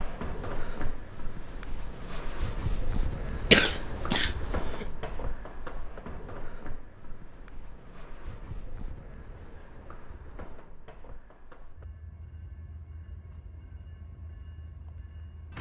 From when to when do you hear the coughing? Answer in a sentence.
You can hear the coughing from 3.5 to 5.0 s.